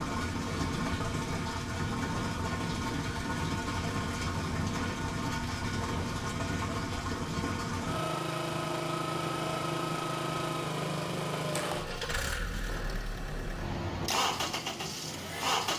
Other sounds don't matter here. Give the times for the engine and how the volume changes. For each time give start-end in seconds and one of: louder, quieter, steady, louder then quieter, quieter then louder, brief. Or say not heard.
0.0-15.7 steady.